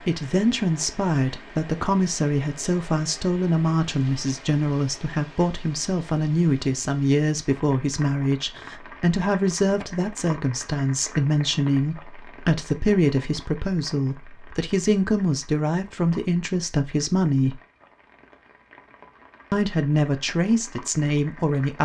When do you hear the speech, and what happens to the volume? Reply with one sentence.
You can hear the speech from 0.1 to 17.6 s, at a steady volume; and briefly from 19.5 to 21.8 s.